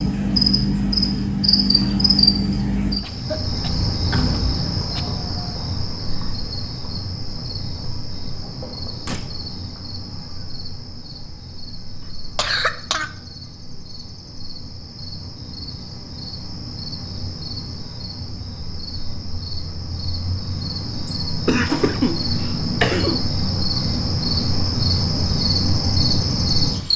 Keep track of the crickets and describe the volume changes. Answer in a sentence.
The loudness of the crickets goes down, then up.